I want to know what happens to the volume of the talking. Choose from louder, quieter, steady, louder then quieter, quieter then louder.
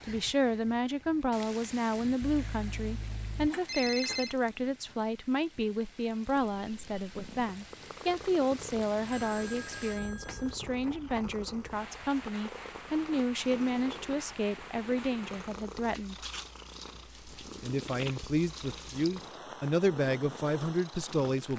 steady.